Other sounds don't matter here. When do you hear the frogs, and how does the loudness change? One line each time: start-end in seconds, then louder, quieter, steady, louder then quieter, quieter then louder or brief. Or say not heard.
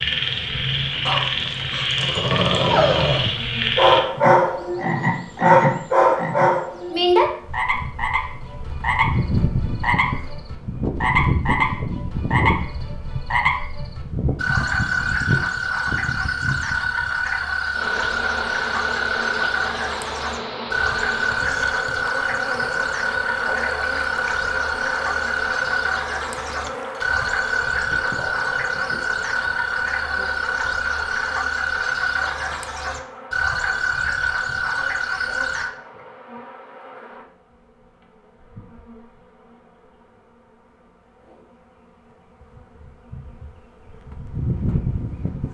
0.0-35.7 steady.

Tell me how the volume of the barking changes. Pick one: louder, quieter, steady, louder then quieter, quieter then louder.
louder.